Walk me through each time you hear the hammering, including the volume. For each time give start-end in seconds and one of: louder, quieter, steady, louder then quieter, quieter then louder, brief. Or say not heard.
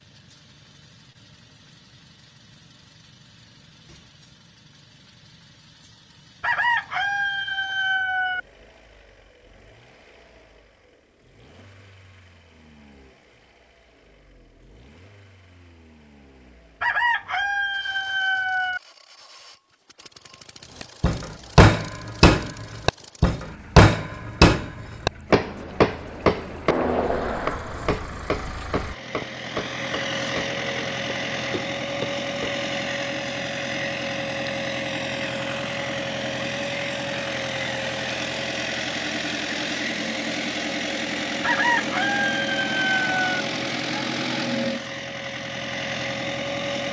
20.8-32.6 quieter.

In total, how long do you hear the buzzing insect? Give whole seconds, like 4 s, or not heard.
not heard.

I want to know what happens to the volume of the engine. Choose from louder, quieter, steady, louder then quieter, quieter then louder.
louder.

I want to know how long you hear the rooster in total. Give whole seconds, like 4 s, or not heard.
6 s.